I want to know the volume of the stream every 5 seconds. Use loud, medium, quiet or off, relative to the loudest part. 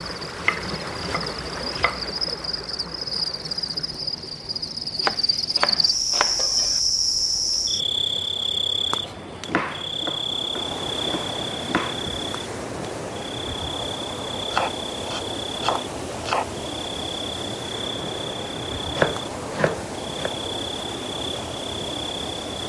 loud, medium, loud, loud, loud.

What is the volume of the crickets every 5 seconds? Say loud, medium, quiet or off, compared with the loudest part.
medium, loud, medium, medium, medium.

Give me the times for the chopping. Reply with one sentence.
You can hear the chopping from 0.3 to 2.0 s, from 5.0 to 6.8 s, from 9.4 to 11.9 s, from 14.5 to 16.4 s and from 18.8 to 20.3 s.